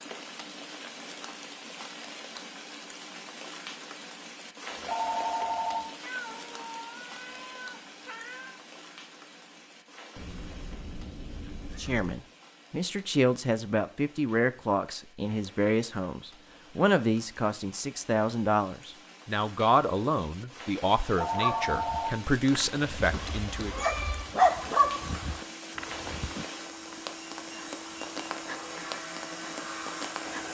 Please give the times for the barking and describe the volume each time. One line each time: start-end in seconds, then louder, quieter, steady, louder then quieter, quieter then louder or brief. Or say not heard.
21.4-26.4 louder then quieter.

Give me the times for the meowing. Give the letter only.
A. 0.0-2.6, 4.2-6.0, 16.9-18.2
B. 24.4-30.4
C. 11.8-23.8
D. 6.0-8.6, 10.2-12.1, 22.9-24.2
D.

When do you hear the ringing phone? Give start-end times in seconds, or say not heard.
4.7-5.8, 21.0-22.1.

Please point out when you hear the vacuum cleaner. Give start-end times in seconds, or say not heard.
24.4-30.4.